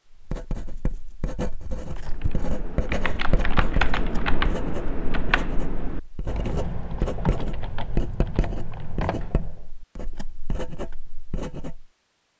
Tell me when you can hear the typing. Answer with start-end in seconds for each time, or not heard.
1.9-9.7.